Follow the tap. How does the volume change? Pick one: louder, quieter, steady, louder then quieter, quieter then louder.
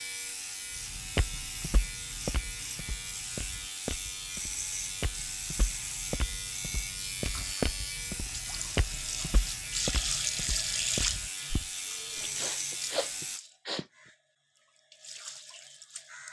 louder then quieter.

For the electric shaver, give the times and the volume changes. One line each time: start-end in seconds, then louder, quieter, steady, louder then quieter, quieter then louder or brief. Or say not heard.
0.0-13.4 steady.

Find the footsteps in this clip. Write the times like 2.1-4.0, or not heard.
0.8-12.4.